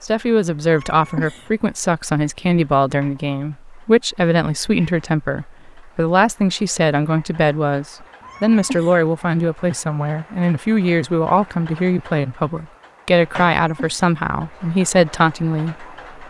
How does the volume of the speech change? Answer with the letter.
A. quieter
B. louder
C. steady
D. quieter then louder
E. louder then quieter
C.